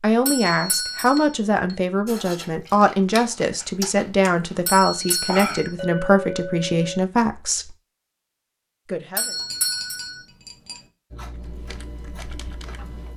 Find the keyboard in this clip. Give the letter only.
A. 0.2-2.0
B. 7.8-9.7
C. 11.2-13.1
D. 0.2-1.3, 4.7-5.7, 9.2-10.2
C.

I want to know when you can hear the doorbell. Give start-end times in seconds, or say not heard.
0.2-1.3, 4.7-5.7, 9.2-10.2.